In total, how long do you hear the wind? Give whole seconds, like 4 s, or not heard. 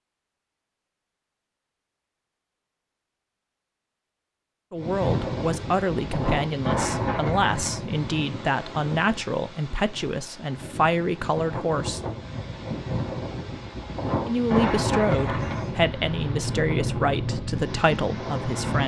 14 s.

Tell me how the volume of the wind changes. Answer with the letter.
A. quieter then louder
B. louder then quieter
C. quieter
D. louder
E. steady
A.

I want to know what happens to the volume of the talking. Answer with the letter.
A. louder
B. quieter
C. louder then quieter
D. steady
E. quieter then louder
D.